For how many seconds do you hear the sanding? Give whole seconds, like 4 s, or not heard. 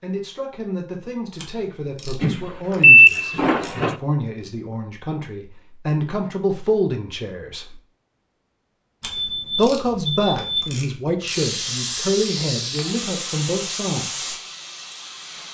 not heard.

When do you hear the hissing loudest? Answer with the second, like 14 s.
12 s.